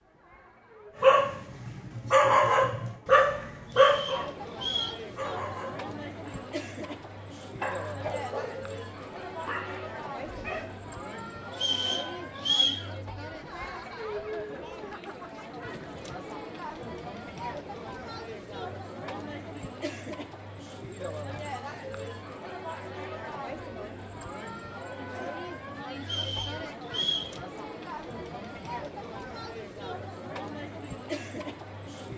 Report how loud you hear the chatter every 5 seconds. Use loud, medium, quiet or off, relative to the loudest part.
medium, loud, loud, loud, loud, loud, loud.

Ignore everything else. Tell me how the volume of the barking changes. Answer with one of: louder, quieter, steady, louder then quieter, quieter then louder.
quieter.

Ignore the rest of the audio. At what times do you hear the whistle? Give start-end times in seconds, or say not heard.
3.7-5.0, 11.5-12.8, 26.0-27.3.